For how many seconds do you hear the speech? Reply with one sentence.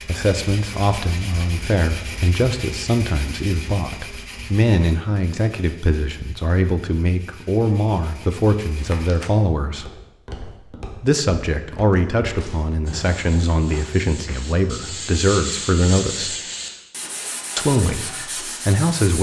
You can hear the speech for 17 seconds altogether.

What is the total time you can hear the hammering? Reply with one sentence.
You can't hear the hammering here.